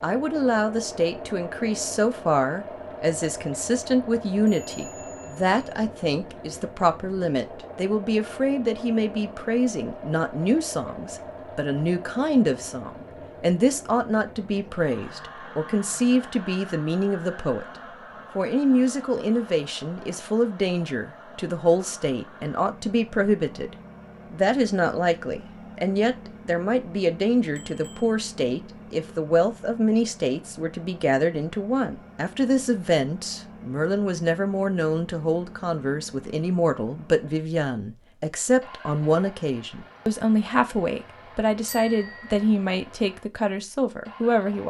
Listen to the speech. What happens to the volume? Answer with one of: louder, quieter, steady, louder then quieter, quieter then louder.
steady.